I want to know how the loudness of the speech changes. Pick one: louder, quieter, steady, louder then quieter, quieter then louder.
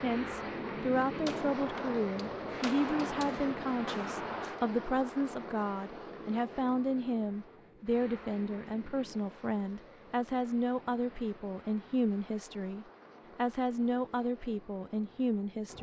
steady.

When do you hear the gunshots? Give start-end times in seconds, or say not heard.
1.2-4.6.